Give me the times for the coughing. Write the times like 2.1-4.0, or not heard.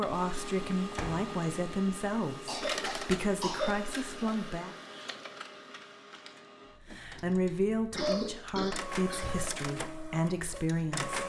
2.5-4.0, 8.0-9.3.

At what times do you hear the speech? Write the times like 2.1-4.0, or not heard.
0.0-4.8, 6.9-11.2.